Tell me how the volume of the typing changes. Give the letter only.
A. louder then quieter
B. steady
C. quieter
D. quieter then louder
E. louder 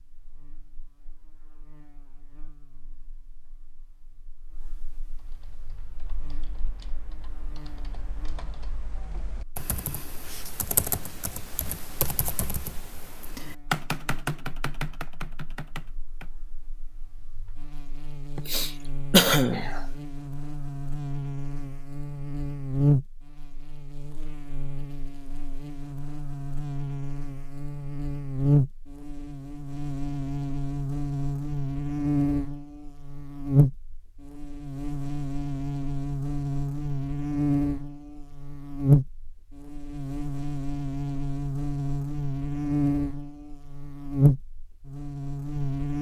E.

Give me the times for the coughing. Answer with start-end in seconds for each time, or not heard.
18.4-19.9.